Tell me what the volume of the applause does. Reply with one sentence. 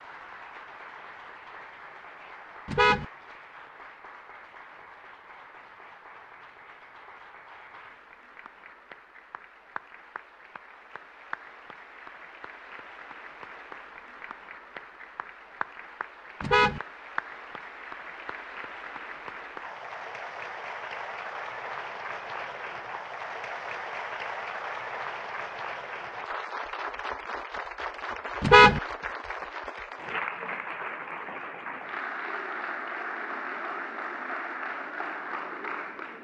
The loudness of the applause goes up.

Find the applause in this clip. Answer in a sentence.
The applause can be heard from 0.0 to 36.1 s.